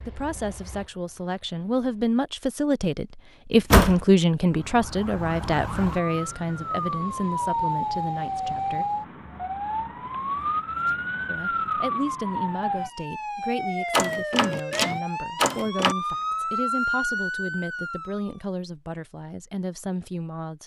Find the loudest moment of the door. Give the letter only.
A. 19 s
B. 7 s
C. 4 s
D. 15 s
C.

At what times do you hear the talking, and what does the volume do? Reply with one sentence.
You can hear the talking from 0.1 to 8.8 s, getting louder then quieter; and from 11.2 to 20.6 s, at a steady volume.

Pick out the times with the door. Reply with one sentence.
The door can be heard from 3.5 to 4.0 s and from 13.9 to 15.9 s.